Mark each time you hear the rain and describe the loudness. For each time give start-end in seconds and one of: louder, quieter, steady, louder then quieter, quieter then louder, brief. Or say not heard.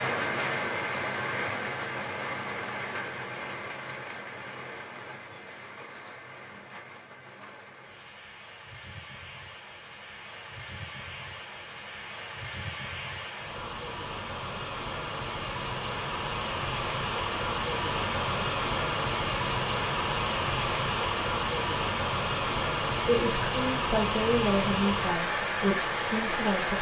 0.0-26.7 quieter then louder.